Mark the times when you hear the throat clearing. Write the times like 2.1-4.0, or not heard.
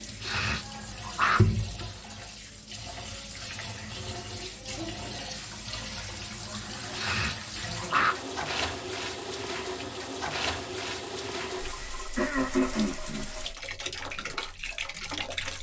0.2-1.4, 6.9-8.2, 12.2-13.3.